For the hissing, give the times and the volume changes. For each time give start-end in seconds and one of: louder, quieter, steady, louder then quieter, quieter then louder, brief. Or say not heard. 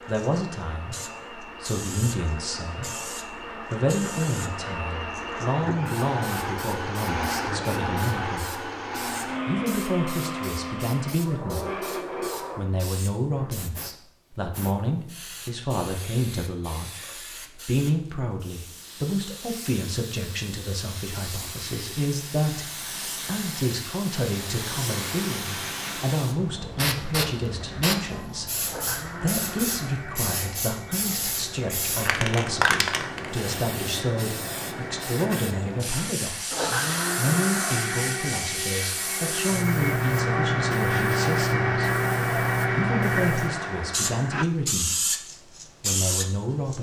0.0-46.7 louder.